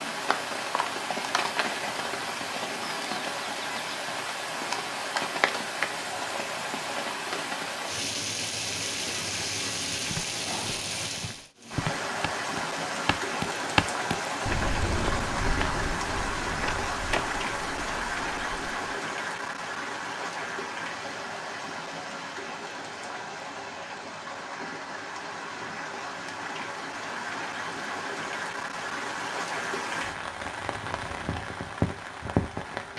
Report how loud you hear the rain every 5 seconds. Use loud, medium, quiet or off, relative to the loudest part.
loud, loud, loud, loud, medium, loud, loud.